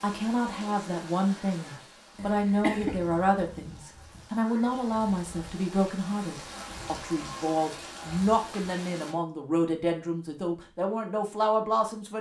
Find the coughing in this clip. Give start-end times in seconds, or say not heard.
2.1-3.0.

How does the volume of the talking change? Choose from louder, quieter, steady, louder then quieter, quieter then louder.
steady.